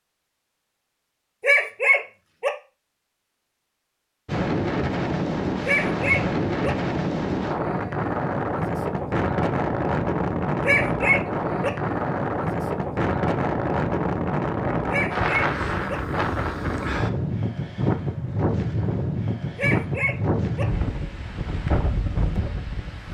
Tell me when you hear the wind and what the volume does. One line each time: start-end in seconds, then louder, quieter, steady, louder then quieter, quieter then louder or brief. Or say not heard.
4.2-23.0 steady.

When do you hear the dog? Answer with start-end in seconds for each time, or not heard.
1.4-2.5, 5.7-6.7, 10.6-11.7, 14.9-15.9, 19.6-20.6.